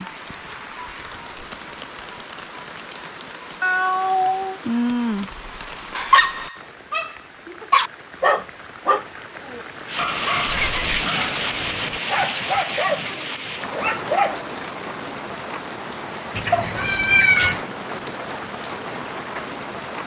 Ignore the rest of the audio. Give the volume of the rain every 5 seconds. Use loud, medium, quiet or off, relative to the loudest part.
medium, medium, loud, medium.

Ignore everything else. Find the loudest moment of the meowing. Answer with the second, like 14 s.
17 s.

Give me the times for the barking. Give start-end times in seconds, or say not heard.
6.0-14.5.